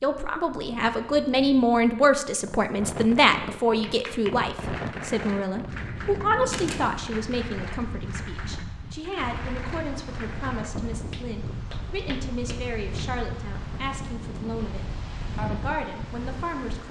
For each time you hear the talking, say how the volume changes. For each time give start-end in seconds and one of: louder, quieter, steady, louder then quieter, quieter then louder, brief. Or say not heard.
0.0-16.8 quieter.